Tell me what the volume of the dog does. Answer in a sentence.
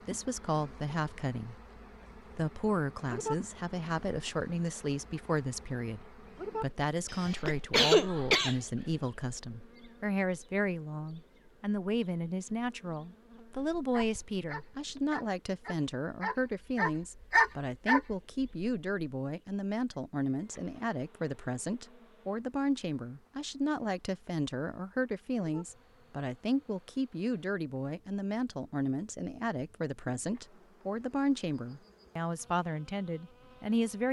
The volume of the dog goes up.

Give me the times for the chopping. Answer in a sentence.
You can't hear the chopping here.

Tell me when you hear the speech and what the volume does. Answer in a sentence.
You can hear the speech briefly from 0.1 to 1.6 s; and from 2.4 to 34.0 s, at a steady volume.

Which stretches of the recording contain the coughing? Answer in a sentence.
The coughing can be heard from 7.1 to 8.6 s.